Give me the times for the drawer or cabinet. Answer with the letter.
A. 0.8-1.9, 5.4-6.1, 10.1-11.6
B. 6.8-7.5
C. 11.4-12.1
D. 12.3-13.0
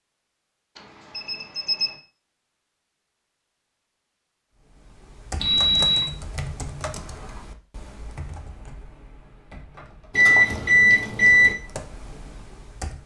B.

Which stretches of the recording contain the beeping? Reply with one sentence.
The beeping can be heard from 0.8 to 1.9 s, from 5.4 to 6.1 s and from 10.1 to 11.6 s.